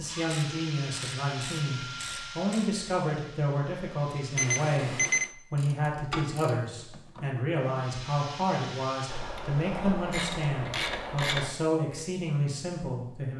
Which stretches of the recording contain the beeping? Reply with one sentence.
The beeping can be heard from 4.3 to 5.3 s.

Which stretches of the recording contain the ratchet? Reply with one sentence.
The ratchet can be heard from 0.2 to 2.7 s, from 5.5 to 7.2 s and from 9.1 to 11.5 s.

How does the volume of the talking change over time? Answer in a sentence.
The loudness of the talking stays about the same.